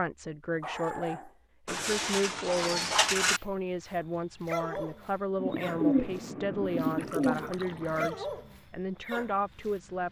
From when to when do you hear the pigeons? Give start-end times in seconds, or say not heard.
1.6-3.4, 5.4-8.1.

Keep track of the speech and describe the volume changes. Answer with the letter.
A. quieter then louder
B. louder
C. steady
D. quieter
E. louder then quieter
C.